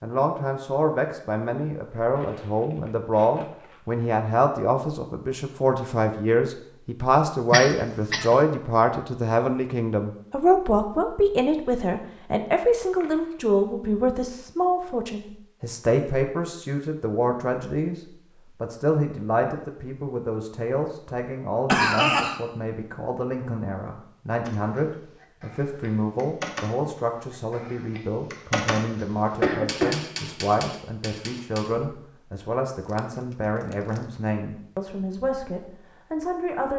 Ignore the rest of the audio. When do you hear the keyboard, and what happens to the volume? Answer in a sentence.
You can hear the keyboard from 24.4 to 32.0 s, getting louder then quieter.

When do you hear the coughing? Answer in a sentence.
The coughing can be heard from 7.5 to 8.3 s, from 21.6 to 22.4 s and from 29.4 to 29.9 s.